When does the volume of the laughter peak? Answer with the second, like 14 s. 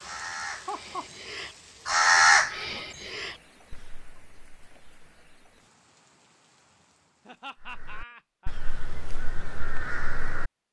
1 s.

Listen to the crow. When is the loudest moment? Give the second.
2 s.